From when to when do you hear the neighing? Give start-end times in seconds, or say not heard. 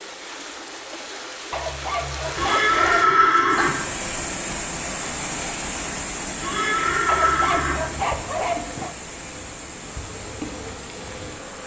2.4-3.8, 6.4-7.8.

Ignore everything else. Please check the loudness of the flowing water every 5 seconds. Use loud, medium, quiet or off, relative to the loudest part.
loud, loud, medium.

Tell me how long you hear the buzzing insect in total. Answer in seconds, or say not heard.
4 s.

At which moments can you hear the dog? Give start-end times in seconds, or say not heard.
1.5-3.1, 7.0-8.9.